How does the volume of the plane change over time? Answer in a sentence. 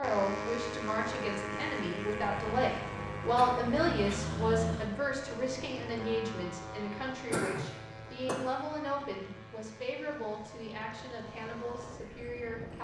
The loudness of the plane goes down.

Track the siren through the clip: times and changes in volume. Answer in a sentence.
The siren can't be heard in this clip.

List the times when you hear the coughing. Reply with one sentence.
You can hear the coughing from 3.4 to 4.2 s and from 7.2 to 8.4 s.